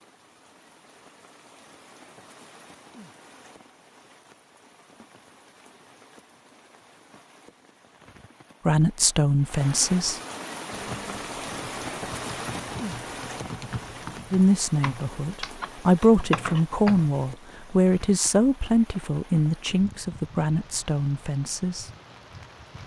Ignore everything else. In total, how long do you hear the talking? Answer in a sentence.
You can hear the talking for 9 seconds altogether.